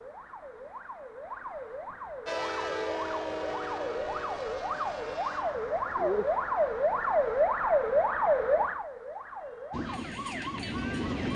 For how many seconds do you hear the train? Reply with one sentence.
The train can be heard for 7 seconds in total.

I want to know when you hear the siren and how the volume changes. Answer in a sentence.
You can hear the siren from 0.0 to 11.3 s, getting louder then quieter.